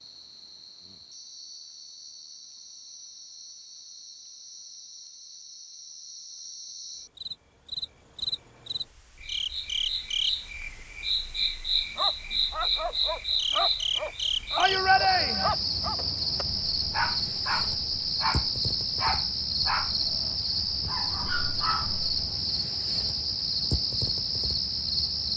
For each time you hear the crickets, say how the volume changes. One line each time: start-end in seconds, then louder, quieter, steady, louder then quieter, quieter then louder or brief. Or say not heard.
0.0-25.3 louder.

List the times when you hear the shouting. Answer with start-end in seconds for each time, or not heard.
14.6-15.6.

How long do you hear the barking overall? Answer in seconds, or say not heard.
10 s.